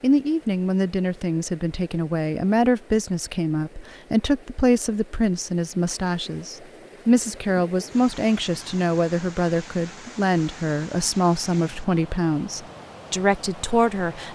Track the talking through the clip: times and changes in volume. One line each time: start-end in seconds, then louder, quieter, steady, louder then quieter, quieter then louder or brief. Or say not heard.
0.0-14.3 steady.